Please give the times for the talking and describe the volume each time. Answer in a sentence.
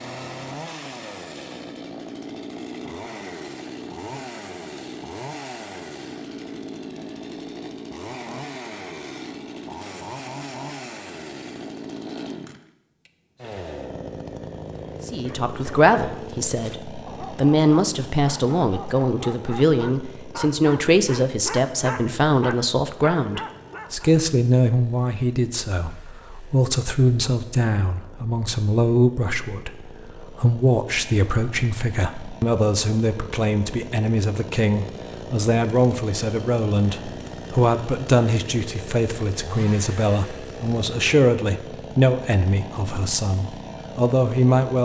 The talking can be heard from 15.1 to 44.8 s, at a steady volume.